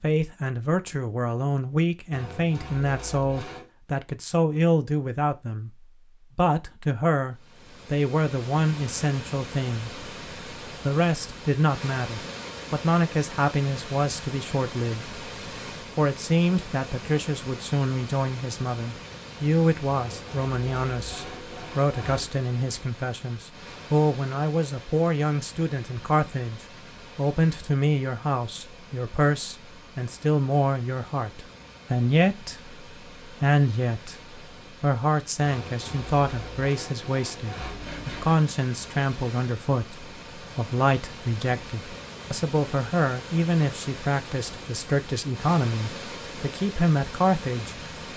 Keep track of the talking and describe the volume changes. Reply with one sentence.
The volume of the talking stays about the same.